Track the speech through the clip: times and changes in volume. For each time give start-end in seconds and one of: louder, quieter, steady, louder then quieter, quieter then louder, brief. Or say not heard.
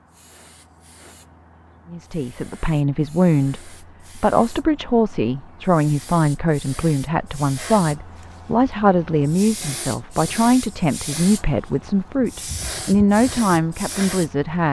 1.9-14.6 steady.